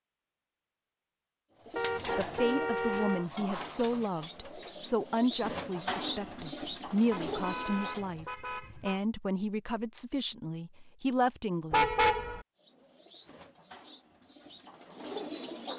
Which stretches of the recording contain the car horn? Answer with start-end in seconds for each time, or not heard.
1.8-3.2, 7.1-9.0, 11.7-12.4.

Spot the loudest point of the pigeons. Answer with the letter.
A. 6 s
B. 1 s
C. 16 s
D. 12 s
A.